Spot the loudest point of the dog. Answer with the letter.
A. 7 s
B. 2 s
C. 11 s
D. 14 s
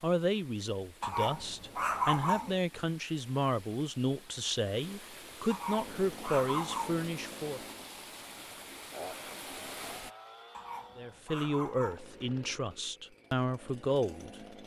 B.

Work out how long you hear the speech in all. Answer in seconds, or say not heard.
11 s.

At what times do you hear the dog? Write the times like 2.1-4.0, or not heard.
1.0-2.6, 5.5-7.0, 10.5-12.2.